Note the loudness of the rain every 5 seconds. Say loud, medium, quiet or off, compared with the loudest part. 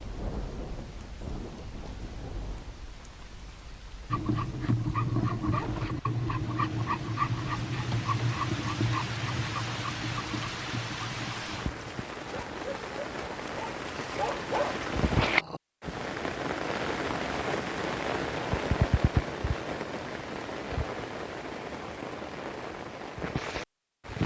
quiet, medium, medium, loud, medium.